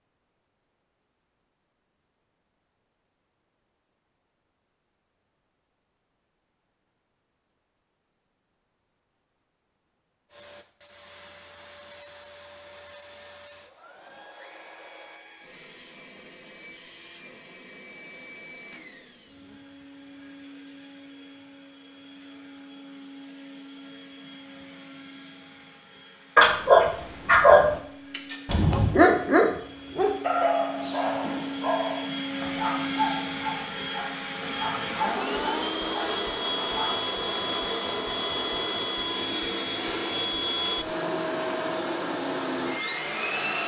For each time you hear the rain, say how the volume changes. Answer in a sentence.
You can't hear the rain here.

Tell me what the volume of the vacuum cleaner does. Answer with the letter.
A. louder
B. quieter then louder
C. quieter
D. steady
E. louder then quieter
A.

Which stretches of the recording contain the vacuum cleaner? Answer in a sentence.
The vacuum cleaner can be heard from 10.3 to 43.6 s.